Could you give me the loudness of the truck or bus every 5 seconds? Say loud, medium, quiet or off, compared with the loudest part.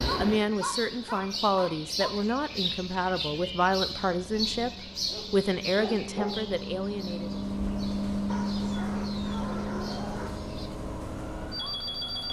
quiet, loud, loud.